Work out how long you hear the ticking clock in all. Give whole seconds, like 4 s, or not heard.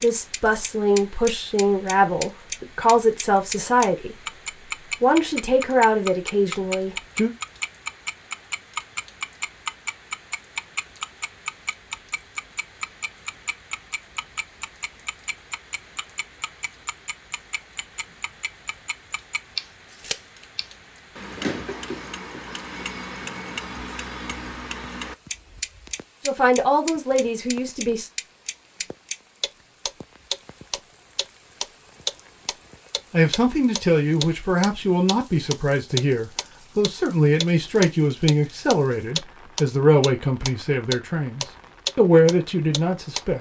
43 s.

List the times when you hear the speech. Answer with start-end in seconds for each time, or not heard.
0.0-4.2, 5.0-7.3, 26.2-28.1, 33.1-43.3.